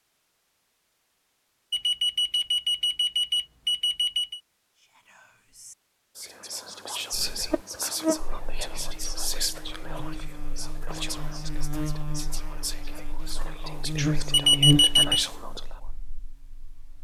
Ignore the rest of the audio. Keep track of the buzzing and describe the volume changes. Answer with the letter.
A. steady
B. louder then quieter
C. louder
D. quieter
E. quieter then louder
E.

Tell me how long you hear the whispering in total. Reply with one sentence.
The whispering can be heard for 11 seconds in total.